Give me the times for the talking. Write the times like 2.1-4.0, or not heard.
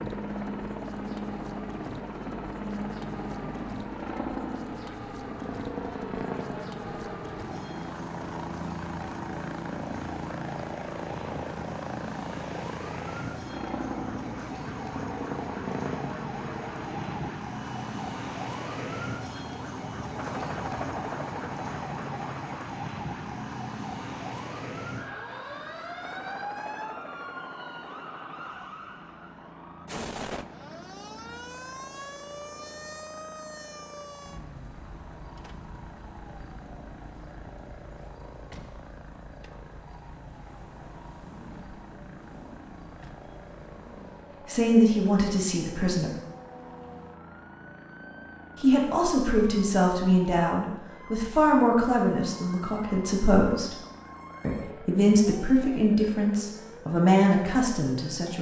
44.5-46.1, 48.6-53.8, 54.4-58.3.